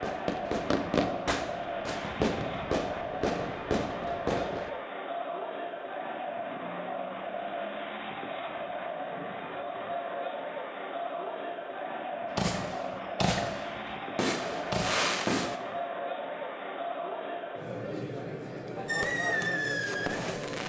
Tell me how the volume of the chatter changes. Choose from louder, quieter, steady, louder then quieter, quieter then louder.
steady.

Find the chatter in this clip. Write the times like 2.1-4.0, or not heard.
0.0-20.6.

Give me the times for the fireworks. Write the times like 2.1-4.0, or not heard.
0.0-4.7, 12.3-15.6, 18.9-20.6.